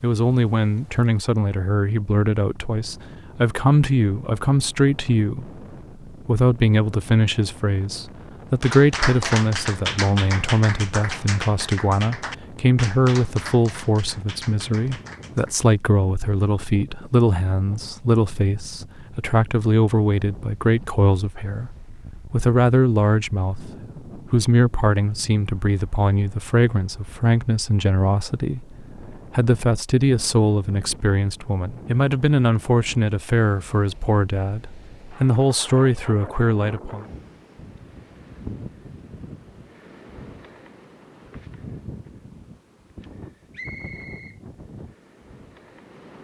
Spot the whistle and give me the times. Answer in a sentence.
The whistle can be heard from 43.5 to 44.4 s.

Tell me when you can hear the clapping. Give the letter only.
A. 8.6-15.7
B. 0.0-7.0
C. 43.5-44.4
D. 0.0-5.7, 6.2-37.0
A.